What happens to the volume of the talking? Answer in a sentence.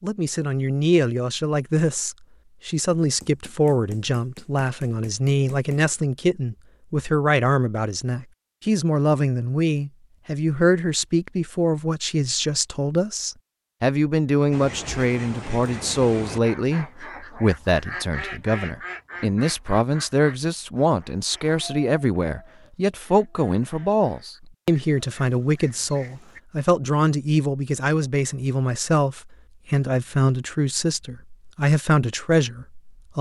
The volume of the talking stays about the same.